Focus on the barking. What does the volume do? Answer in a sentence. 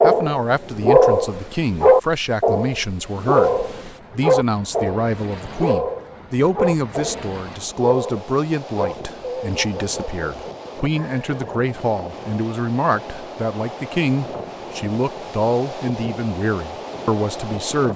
The loudness of the barking goes down.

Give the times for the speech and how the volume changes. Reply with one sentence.
You can hear the speech from 0.0 to 17.9 s, at a steady volume.